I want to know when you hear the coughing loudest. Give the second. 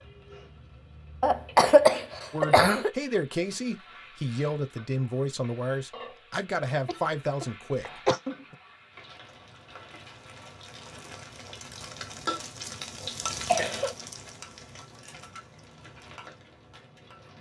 2 s.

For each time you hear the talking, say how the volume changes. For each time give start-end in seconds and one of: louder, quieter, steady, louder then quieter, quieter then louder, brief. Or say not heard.
2.3-8.6 steady.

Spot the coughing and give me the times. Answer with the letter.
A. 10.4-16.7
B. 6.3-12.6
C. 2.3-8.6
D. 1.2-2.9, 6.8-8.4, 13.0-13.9
D.